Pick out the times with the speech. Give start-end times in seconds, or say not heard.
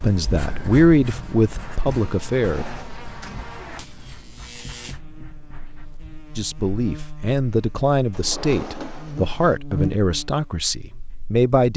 0.0-2.6, 6.3-11.7.